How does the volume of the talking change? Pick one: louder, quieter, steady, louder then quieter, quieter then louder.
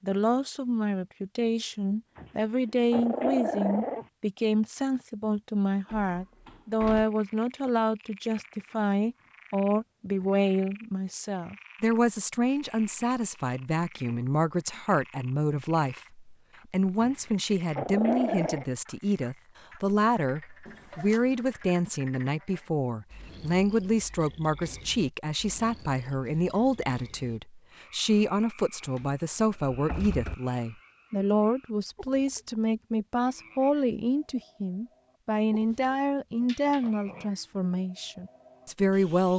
steady.